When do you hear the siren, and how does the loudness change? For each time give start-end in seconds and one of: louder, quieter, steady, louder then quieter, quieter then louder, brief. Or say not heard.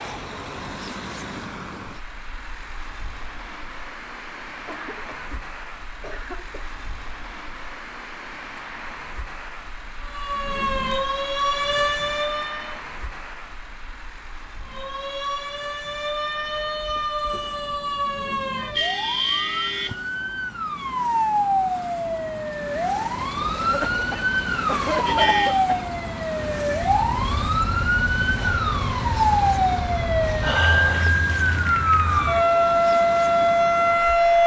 10.0-12.8 brief
14.7-34.4 louder.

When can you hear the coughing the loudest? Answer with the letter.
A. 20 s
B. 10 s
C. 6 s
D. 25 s
D.